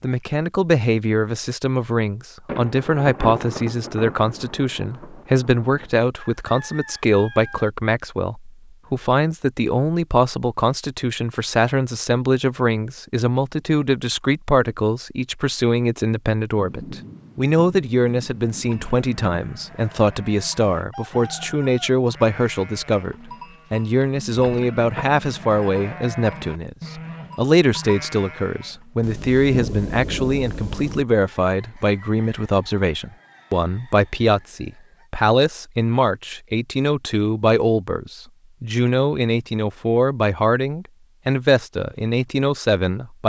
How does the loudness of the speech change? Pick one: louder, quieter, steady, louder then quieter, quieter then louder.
steady.